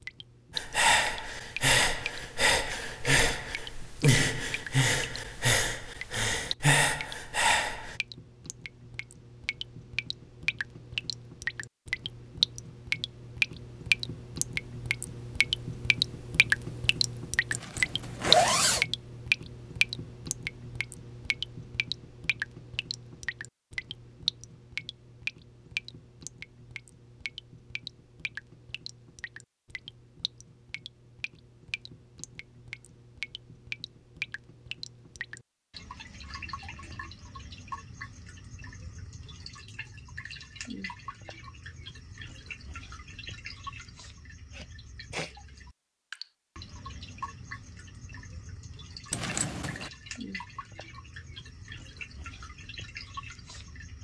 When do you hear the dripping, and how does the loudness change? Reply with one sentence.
You can hear the dripping from 0.0 to 54.0 s, getting louder then quieter.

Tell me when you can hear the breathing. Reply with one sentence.
You can hear the breathing from 0.6 to 8.0 s.